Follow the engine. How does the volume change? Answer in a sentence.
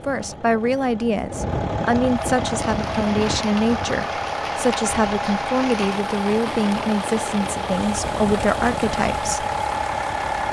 The volume of the engine stays about the same.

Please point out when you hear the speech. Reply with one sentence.
The speech can be heard from 0.1 to 9.4 s.